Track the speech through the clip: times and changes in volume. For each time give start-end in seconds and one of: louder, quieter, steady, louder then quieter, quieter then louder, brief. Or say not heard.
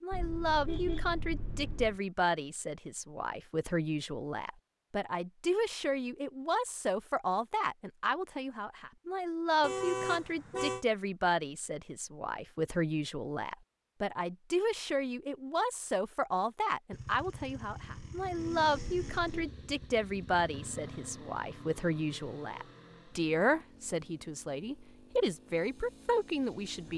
0.0-26.9 steady.